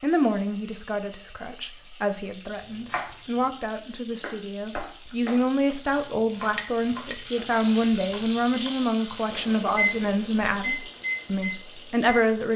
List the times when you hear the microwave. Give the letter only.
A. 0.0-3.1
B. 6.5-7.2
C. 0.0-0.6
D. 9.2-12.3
D.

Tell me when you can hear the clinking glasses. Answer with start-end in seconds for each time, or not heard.
6.5-7.2.